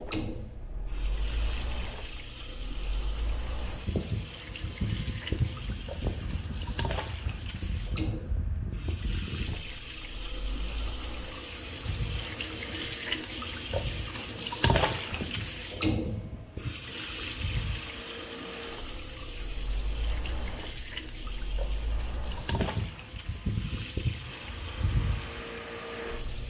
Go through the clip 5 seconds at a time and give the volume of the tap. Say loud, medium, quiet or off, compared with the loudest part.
medium, medium, loud, loud, medium, medium.